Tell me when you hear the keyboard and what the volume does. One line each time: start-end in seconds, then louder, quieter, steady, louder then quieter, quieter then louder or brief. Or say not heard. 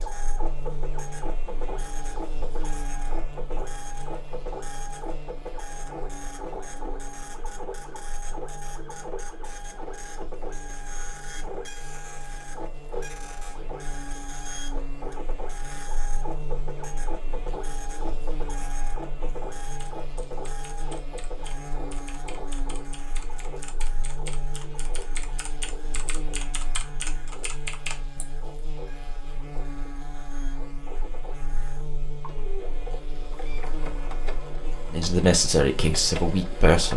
19.6-28.2 louder.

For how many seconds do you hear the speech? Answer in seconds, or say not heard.
2 s.